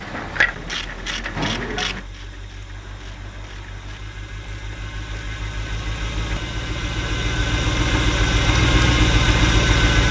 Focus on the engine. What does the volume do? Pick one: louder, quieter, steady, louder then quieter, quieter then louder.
louder.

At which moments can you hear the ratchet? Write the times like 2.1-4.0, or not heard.
0.0-5.2.